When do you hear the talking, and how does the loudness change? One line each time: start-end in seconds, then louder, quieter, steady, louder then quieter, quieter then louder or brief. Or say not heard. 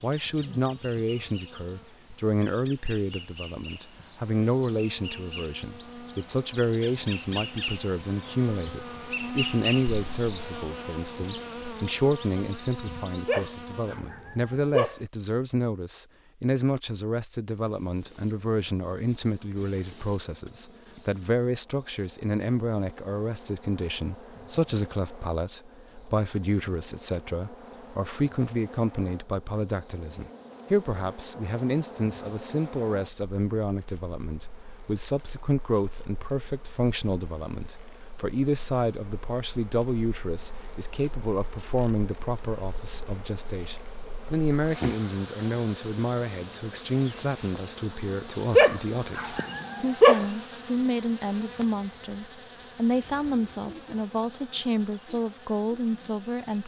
0.0-56.6 steady.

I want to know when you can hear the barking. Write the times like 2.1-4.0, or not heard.
13.2-15.0, 48.5-50.2.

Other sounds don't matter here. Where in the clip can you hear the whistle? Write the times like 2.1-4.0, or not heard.
not heard.